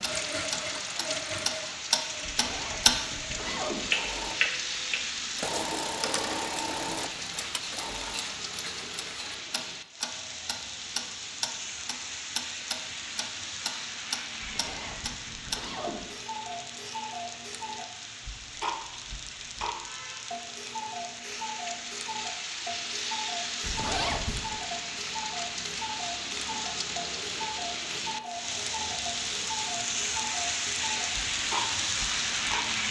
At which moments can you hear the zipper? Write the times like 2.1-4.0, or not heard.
2.2-4.0, 14.4-16.1, 23.6-24.6.